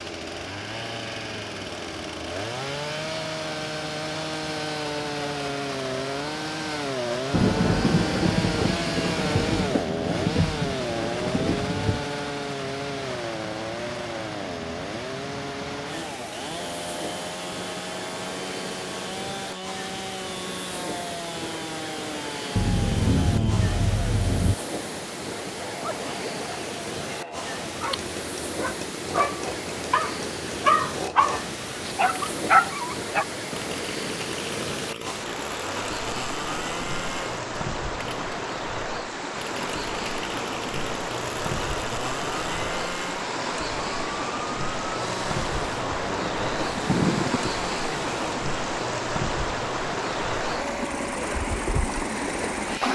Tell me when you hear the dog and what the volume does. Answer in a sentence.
The dog can be heard from 25.9 to 33.2 s, getting louder.